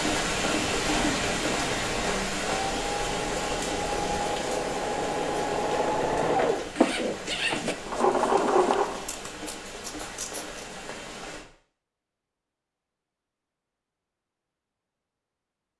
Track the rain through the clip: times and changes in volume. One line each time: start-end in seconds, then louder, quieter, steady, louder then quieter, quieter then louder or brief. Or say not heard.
0.0-11.4 quieter.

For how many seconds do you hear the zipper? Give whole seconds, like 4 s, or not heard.
2 s.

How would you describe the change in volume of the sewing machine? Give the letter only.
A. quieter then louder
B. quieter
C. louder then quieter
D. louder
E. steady
D.